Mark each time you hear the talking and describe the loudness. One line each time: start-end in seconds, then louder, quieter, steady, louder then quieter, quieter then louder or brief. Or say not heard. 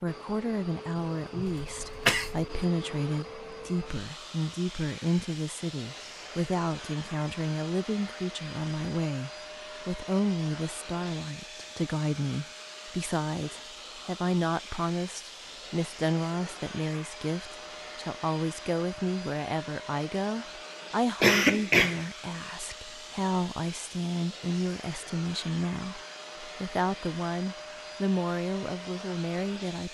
0.0-29.8 steady.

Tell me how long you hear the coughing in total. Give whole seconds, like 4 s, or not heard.
2 s.